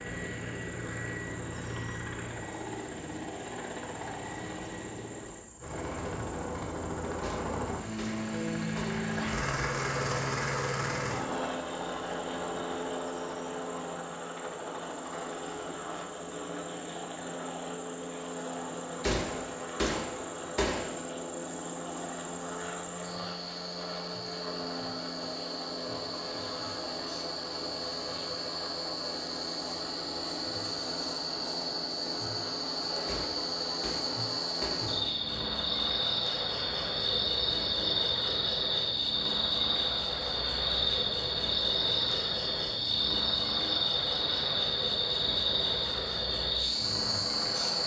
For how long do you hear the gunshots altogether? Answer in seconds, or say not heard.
6 s.